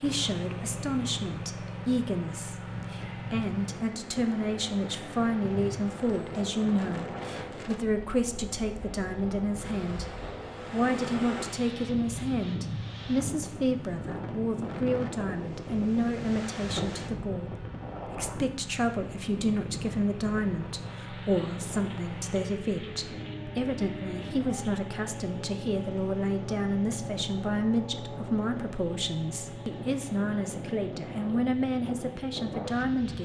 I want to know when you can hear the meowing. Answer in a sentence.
You can't hear the meowing here.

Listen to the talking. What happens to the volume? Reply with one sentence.
The loudness of the talking stays about the same.